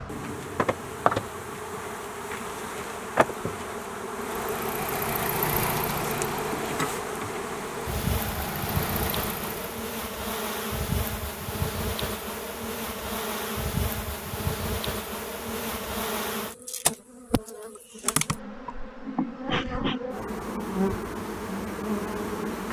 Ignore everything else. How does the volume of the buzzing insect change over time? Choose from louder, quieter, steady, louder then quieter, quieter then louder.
steady.